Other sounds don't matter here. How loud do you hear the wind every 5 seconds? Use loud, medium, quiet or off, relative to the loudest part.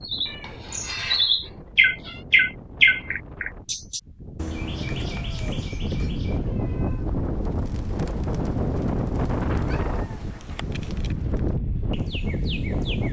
quiet, loud, loud.